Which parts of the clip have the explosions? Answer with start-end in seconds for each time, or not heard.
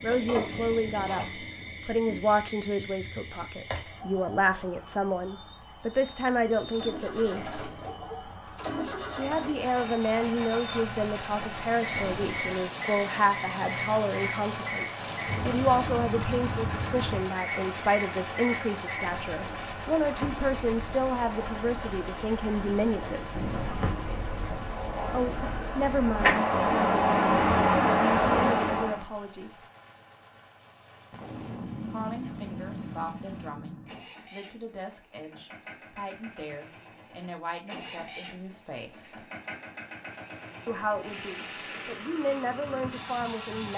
11.9-12.6, 23.4-24.1, 31.1-34.0.